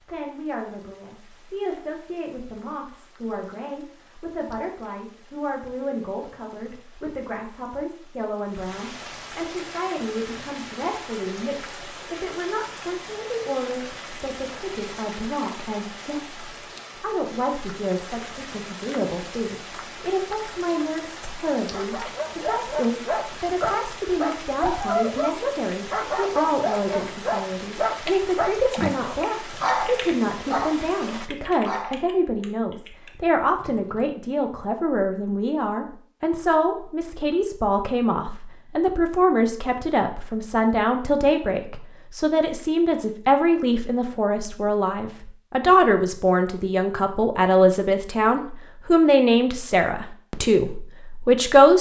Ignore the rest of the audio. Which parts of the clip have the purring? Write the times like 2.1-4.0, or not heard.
not heard.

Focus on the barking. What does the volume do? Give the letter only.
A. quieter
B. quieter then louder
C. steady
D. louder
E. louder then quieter
C.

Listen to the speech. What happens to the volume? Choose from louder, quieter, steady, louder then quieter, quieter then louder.
louder.